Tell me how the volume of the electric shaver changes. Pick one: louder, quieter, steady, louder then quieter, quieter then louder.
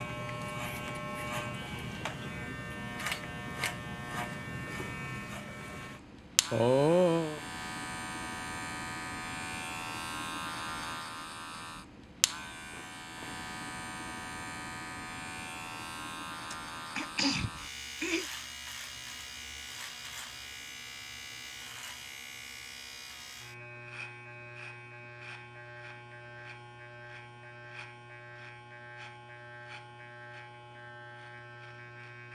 quieter.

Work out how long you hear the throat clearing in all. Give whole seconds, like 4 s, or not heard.
3 s.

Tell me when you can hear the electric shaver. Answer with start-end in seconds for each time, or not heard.
0.0-32.2.